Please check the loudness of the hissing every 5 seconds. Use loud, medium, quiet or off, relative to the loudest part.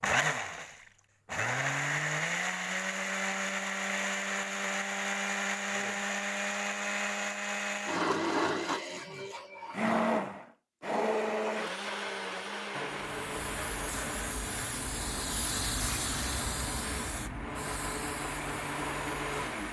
off, off, loud, loud.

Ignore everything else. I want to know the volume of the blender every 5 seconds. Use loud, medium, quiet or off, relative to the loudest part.
loud, loud, loud, medium.